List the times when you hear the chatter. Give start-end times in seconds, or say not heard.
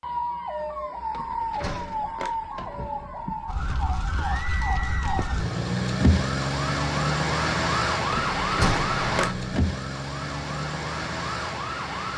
not heard.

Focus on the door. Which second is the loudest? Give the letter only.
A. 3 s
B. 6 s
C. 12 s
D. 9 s
D.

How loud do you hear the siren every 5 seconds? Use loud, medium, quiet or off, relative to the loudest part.
medium, loud, medium.